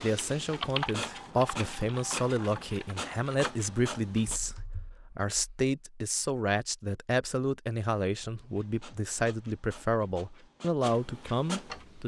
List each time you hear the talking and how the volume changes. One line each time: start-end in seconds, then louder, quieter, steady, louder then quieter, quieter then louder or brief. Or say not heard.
0.0-12.0 steady.